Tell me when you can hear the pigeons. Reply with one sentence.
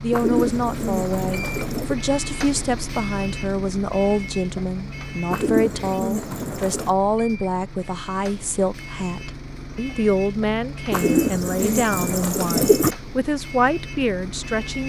The pigeons can be heard from 0.1 to 1.9 s, from 5.3 to 7.0 s and from 10.9 to 12.9 s.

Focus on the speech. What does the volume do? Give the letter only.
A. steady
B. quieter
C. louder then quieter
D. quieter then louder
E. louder
A.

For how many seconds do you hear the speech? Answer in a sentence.
The speech can be heard for 15 seconds in total.